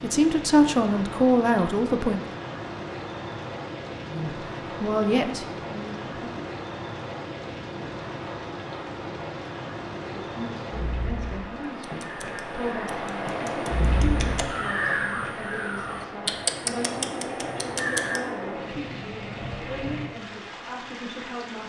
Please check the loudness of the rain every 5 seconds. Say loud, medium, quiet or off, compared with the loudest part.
loud, loud, loud, loud, medium.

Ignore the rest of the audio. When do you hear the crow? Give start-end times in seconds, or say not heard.
11.8-18.3.